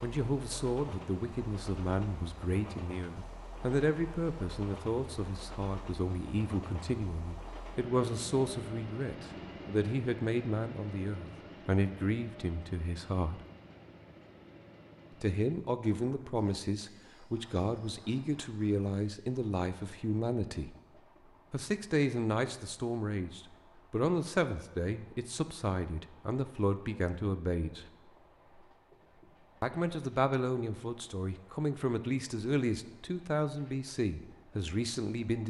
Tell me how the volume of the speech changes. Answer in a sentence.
The volume of the speech stays about the same.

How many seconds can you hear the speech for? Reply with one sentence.
The speech can be heard for 31 seconds in total.